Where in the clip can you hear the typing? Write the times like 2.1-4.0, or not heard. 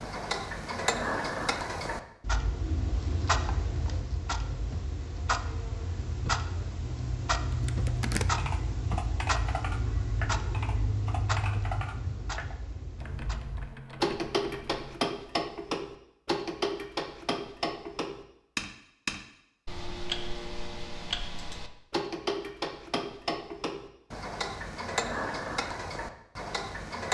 7.5-15.0.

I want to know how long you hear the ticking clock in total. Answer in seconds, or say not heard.
27 s.